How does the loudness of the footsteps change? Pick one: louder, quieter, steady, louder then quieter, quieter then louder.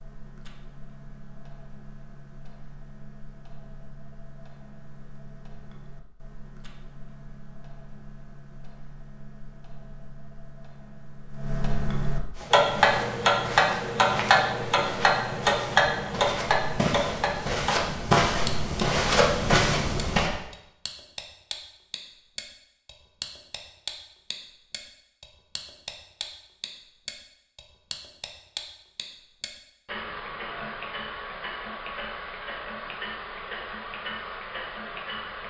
louder.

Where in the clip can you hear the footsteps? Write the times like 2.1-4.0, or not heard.
12.3-20.3.